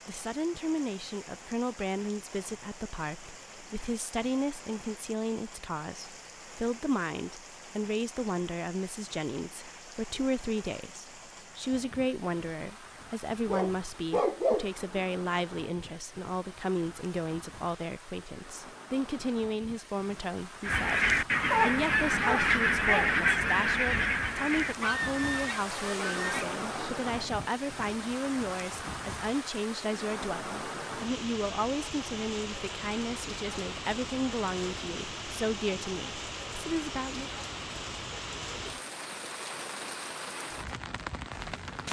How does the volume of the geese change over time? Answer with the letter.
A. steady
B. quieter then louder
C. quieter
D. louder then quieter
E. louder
C.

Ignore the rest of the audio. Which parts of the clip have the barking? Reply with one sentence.
The barking can be heard from 13.4 to 15.1 s and from 21.5 to 23.2 s.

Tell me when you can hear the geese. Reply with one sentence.
You can hear the geese from 20.6 to 26.9 s.